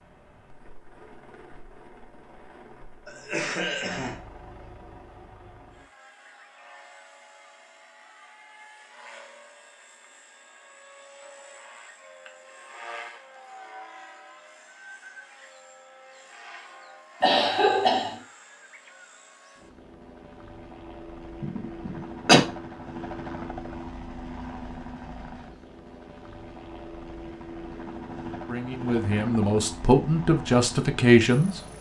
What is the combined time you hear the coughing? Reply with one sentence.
You can hear the coughing for 3 seconds altogether.